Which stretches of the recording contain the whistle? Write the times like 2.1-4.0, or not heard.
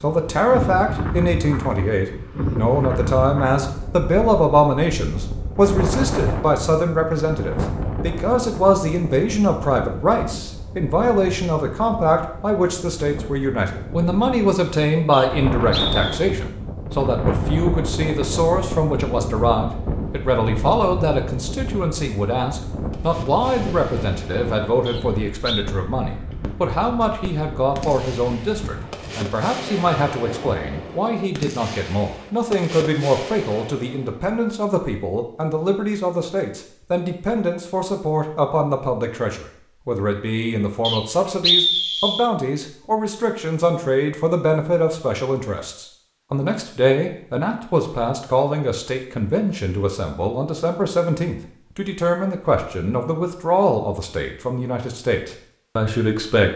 15.1-16.2, 24.9-25.6, 40.8-42.3.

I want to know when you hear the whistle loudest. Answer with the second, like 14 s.
42 s.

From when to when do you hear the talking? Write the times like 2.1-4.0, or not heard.
0.0-56.5.